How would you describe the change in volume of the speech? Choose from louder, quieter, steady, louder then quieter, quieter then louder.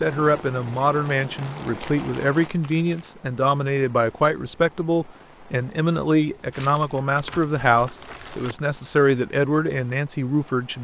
steady.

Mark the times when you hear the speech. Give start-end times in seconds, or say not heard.
0.0-10.7.